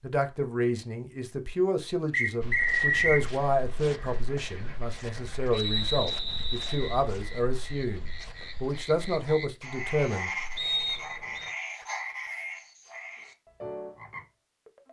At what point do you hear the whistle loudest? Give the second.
3 s.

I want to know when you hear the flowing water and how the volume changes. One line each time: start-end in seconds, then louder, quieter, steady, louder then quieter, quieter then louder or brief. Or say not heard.
not heard.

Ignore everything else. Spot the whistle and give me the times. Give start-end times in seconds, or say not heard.
2.1-3.2, 5.5-7.0, 10.6-11.5.